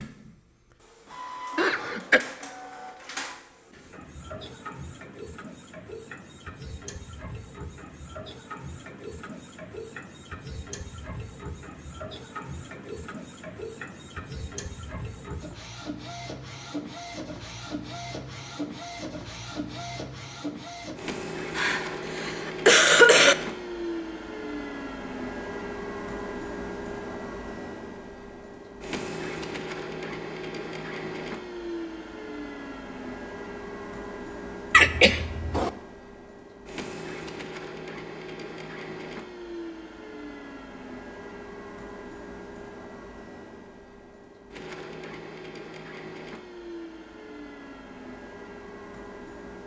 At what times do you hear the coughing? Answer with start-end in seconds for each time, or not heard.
1.6-2.2, 21.6-23.4, 34.7-35.7.